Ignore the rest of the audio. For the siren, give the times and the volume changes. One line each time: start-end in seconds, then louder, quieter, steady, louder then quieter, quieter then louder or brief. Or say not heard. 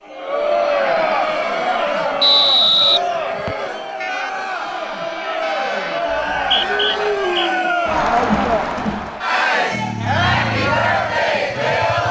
not heard.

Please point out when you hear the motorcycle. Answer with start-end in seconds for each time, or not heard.
9.7-12.0.